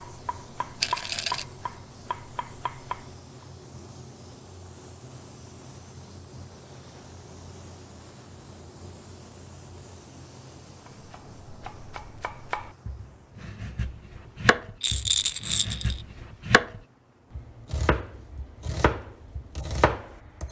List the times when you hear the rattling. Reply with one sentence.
The rattling can be heard from 0.8 to 1.4 s and from 14.8 to 16.0 s.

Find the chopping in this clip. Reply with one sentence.
The chopping can be heard from 0.0 to 3.5 s and from 10.8 to 20.4 s.